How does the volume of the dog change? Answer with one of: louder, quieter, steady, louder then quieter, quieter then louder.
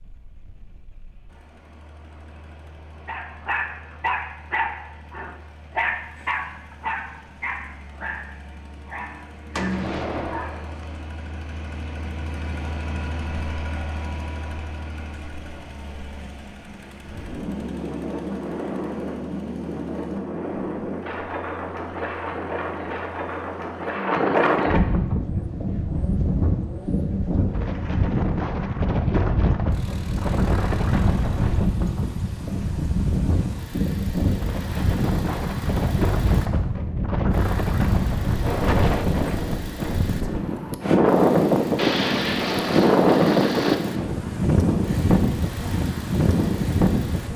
quieter.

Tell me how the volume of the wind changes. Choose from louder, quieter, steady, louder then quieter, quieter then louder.
louder.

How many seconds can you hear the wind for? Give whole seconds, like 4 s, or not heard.
30 s.